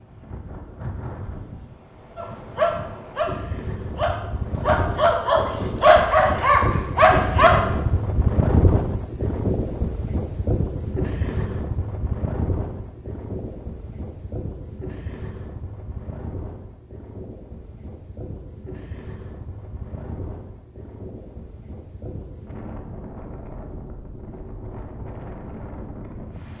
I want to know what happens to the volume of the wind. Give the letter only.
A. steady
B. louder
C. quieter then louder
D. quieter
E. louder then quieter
E.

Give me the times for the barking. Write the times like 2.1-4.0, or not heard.
2.1-7.6.